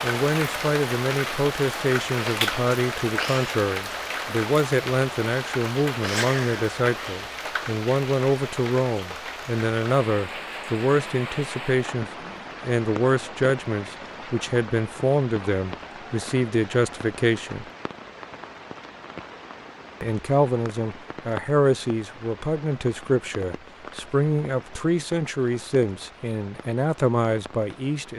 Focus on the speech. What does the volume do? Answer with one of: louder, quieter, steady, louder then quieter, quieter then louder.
steady.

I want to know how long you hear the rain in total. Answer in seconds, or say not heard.
28 s.